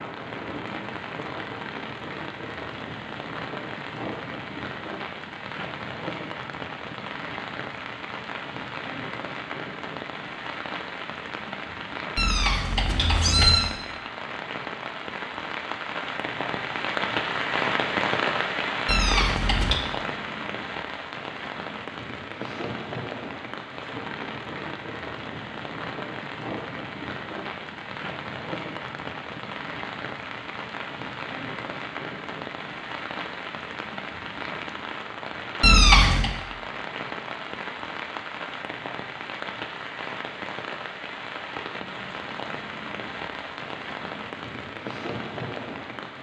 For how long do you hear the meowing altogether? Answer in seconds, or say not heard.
3 s.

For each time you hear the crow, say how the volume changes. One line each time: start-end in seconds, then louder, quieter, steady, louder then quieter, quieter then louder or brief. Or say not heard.
not heard.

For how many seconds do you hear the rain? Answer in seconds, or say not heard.
46 s.